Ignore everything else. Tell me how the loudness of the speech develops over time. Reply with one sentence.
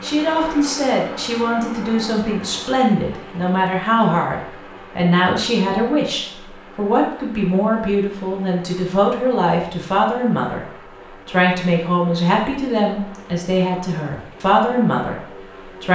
The loudness of the speech stays about the same.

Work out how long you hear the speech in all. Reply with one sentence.
The speech can be heard for 15 seconds in total.